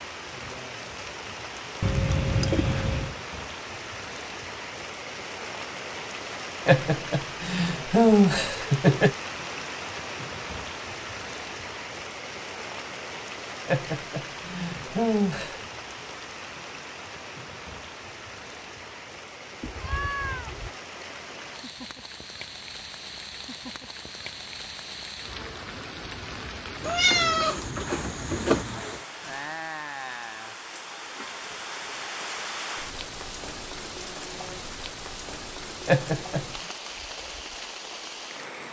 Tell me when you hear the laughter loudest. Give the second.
8 s.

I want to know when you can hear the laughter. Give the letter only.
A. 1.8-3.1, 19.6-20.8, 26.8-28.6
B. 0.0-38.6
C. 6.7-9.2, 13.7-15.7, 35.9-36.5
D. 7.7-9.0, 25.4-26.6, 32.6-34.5
C.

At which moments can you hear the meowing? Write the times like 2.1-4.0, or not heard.
1.8-3.1, 19.6-20.8, 26.8-28.6.